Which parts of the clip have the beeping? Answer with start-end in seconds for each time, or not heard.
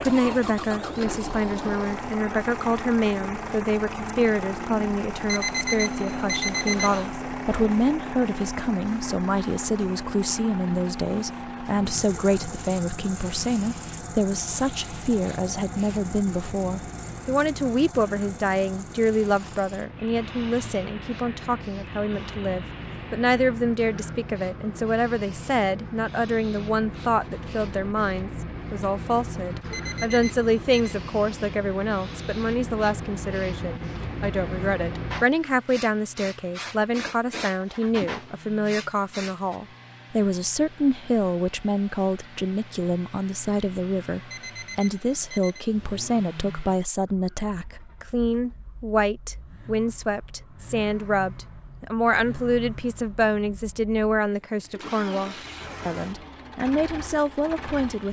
5.2-7.1, 29.7-30.9, 44.3-45.6.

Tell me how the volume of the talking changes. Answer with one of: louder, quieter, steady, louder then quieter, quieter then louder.
steady.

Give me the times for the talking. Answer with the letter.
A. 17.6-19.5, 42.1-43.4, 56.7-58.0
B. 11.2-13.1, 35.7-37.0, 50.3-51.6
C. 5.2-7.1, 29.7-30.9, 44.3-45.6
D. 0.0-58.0
D.